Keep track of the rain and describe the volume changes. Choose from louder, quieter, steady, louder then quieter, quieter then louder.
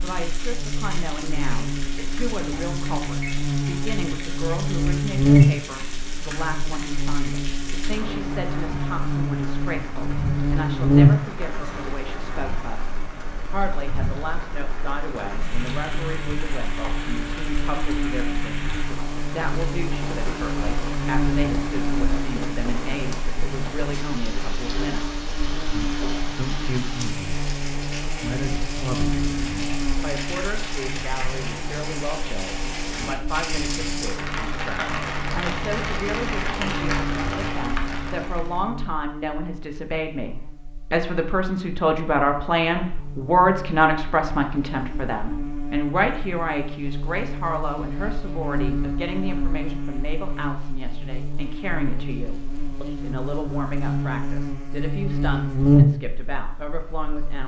louder.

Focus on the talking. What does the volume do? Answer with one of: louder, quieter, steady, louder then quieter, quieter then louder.
louder then quieter.